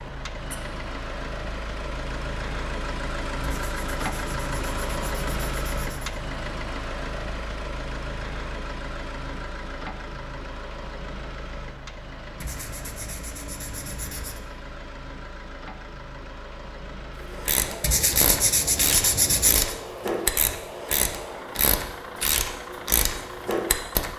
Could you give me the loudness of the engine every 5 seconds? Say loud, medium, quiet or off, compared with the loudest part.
loud, loud, medium, medium, medium.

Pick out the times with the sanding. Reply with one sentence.
You can hear the sanding from 3.5 to 6.2 s, from 12.4 to 14.4 s and from 17.8 to 19.8 s.